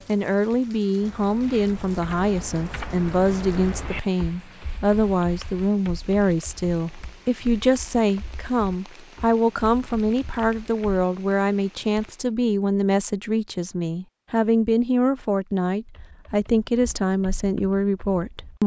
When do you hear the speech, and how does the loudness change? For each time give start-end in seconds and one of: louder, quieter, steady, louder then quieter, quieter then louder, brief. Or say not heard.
0.1-18.6 steady.